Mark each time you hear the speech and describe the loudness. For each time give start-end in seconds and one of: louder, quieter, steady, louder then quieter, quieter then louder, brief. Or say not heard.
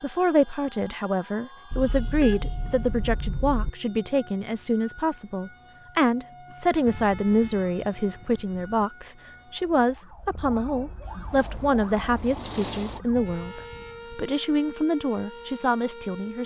0.0-16.4 steady.